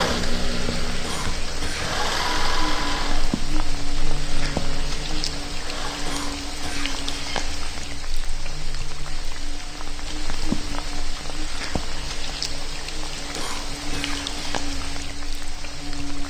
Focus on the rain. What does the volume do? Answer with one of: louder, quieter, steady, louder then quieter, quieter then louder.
steady.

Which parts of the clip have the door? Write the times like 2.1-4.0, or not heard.
not heard.